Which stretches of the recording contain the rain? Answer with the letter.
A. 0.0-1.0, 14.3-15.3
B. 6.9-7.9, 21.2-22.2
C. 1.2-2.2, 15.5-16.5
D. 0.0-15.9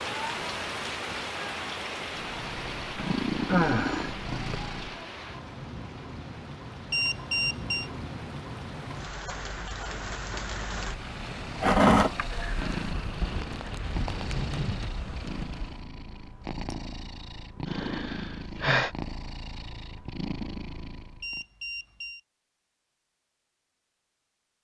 D.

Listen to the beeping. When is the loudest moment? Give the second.
7 s.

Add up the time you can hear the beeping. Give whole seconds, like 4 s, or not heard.
2 s.